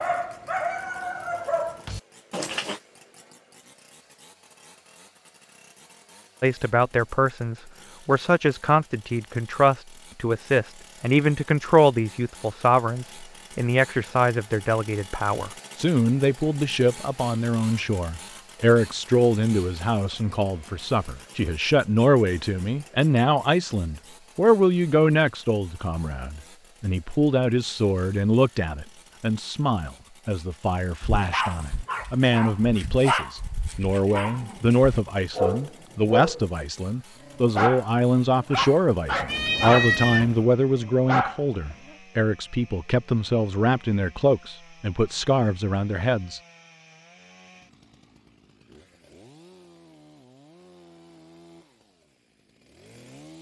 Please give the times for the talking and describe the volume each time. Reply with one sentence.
You can hear the talking from 6.4 to 46.4 s, at a steady volume.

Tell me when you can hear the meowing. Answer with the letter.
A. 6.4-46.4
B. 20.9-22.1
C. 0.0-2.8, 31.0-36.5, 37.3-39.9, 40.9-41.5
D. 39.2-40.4
D.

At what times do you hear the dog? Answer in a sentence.
You can hear the dog from 0.0 to 2.8 s, from 31.0 to 36.5 s, from 37.3 to 39.9 s and from 40.9 to 41.5 s.